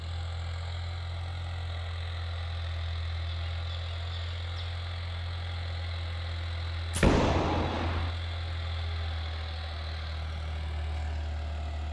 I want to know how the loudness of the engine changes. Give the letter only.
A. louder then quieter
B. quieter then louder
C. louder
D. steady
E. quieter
D.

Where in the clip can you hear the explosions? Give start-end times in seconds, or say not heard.
6.9-8.1.